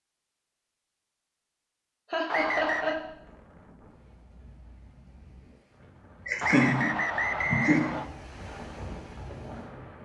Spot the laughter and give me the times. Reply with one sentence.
You can hear the laughter from 2.1 to 3.0 s and from 6.2 to 8.0 s.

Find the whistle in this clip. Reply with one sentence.
You can hear the whistle from 2.2 to 3.0 s and from 6.4 to 8.1 s.